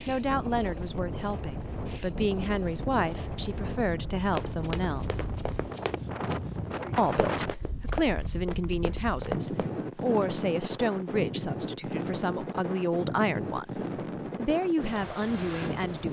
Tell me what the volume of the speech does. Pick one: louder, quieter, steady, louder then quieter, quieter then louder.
steady.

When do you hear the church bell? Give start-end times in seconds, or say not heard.
not heard.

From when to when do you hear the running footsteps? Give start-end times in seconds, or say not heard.
4.3-9.8.